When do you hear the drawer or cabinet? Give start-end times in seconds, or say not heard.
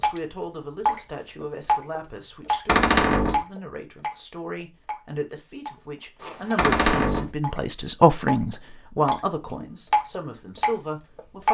2.6-3.5, 6.5-7.3.